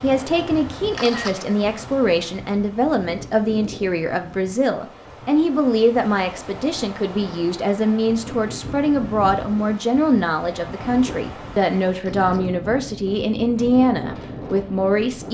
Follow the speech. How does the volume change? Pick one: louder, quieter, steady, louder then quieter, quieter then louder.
steady.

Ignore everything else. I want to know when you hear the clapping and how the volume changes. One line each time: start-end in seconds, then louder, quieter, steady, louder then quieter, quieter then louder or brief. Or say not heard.
not heard.